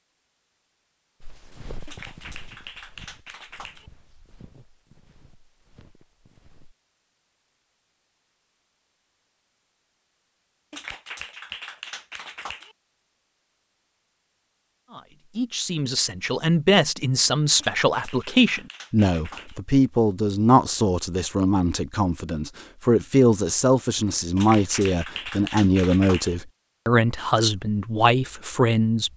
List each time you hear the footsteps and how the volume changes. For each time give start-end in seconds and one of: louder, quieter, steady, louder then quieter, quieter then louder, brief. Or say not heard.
1.2-6.8 quieter.